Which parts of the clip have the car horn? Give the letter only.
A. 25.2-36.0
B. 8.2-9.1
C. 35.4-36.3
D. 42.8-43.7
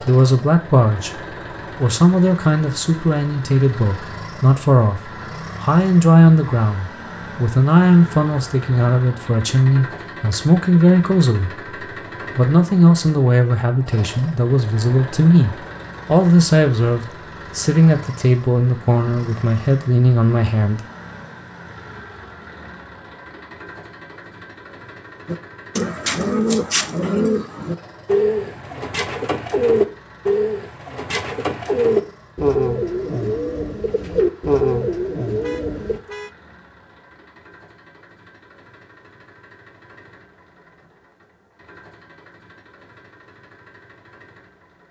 C.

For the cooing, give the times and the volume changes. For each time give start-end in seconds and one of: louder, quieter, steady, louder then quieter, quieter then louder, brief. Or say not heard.
25.2-36.0 steady.